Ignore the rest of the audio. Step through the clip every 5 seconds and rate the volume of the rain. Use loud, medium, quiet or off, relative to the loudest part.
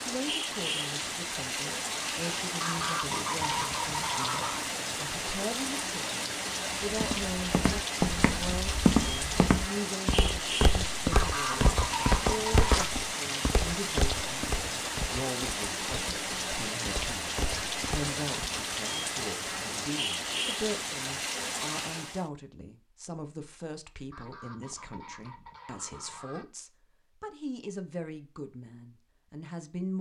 loud, loud, loud, loud, loud, off.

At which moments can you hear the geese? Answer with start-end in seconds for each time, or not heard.
2.6-4.7, 11.1-12.9, 24.1-26.4.